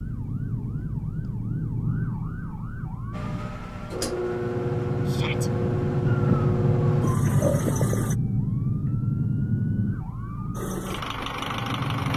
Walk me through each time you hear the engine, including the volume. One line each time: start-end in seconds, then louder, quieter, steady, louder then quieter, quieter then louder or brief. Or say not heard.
3.1-8.2 steady
10.6-12.1 brief.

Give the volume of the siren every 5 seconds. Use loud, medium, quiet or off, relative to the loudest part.
medium, loud, medium.